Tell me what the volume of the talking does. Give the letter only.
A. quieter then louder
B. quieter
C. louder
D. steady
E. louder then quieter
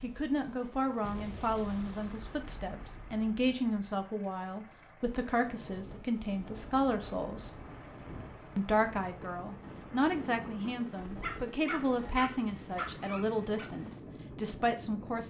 D.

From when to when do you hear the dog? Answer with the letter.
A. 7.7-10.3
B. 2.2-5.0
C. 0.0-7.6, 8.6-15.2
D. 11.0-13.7
D.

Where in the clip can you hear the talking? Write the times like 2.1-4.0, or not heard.
0.0-7.6, 8.6-15.2.